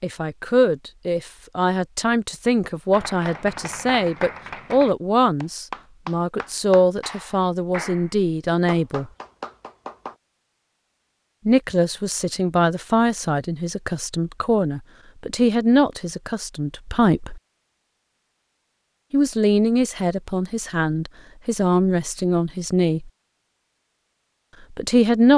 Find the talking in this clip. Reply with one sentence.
You can hear the talking from 0.0 to 9.1 s, from 11.4 to 17.4 s, from 19.1 to 23.1 s and from 24.7 to 25.3 s.